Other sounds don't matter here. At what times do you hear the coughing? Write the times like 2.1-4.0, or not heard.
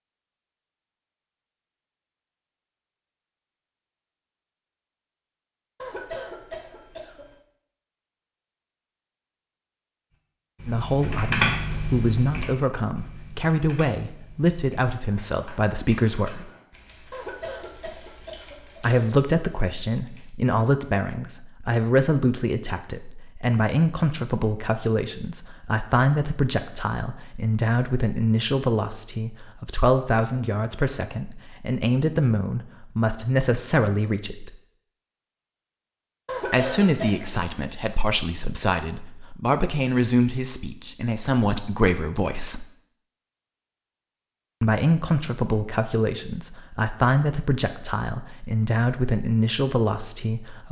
5.8-7.3, 17.1-18.8, 36.2-37.3.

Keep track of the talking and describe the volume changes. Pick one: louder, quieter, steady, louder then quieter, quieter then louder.
steady.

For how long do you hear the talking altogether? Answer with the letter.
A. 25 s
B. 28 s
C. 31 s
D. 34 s
D.